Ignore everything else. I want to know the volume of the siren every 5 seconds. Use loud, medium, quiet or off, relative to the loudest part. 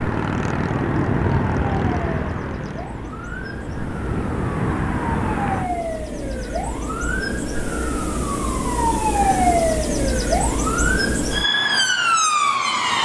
quiet, loud, loud.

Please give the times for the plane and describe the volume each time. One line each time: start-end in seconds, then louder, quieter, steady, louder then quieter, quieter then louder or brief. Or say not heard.
0.0-5.7 quieter then louder.